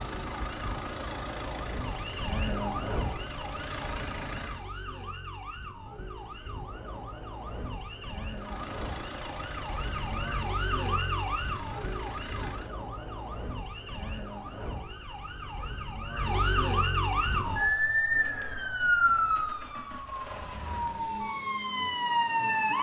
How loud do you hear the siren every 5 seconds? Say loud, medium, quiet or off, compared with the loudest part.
medium, quiet, medium, loud, loud.